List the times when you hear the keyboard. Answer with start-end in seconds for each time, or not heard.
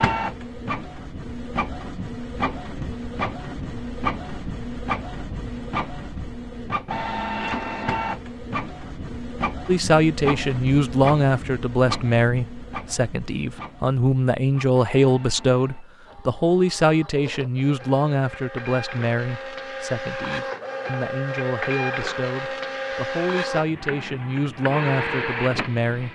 not heard.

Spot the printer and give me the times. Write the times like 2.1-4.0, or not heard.
0.0-26.1.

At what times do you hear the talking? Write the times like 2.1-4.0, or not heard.
9.7-26.1.